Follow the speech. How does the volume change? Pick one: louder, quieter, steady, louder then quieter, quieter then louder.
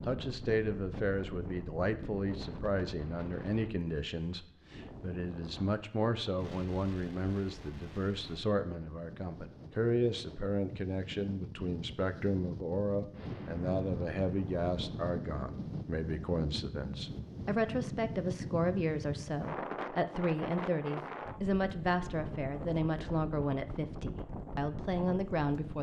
steady.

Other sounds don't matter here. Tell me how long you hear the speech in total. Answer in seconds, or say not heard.
26 s.